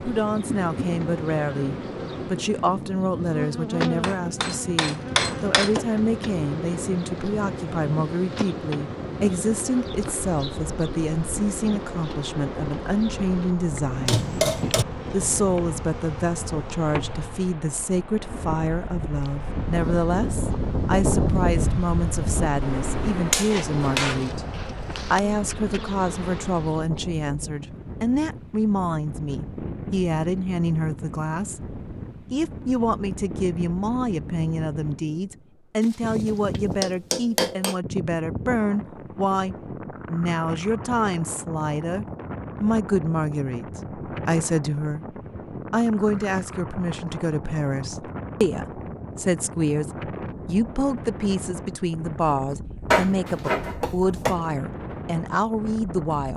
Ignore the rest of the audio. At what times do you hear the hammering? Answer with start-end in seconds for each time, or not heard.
4.0-5.8, 14.1-14.8, 22.6-24.3, 35.8-37.8, 52.9-54.4.